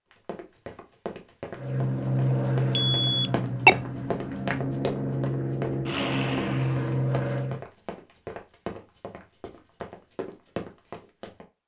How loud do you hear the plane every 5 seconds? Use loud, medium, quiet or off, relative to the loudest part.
loud, loud, off.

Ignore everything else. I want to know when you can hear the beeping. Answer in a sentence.
The beeping can be heard from 2.8 to 3.8 s.